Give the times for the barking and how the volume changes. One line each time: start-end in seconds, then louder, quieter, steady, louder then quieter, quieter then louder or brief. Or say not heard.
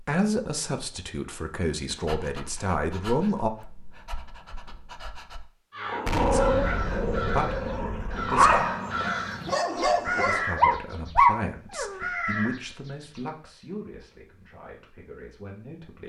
1.9-12.1 louder.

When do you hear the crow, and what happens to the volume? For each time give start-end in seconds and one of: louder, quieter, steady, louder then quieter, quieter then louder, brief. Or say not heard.
5.7-13.3 steady.